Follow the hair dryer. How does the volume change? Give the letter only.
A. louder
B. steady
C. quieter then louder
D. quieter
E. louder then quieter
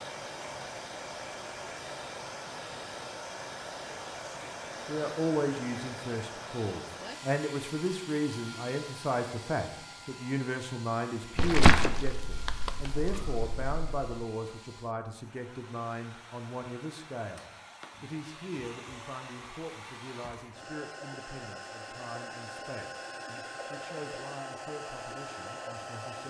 C.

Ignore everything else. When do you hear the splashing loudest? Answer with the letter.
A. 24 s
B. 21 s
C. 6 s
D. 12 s
D.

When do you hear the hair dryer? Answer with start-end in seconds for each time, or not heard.
0.0-26.2.